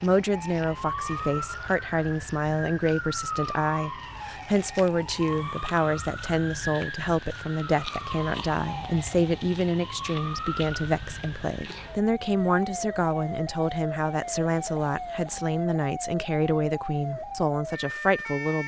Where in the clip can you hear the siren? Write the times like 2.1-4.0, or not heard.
0.0-18.6.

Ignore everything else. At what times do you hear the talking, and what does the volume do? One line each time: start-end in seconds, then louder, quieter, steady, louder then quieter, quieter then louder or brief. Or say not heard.
0.0-18.6 steady.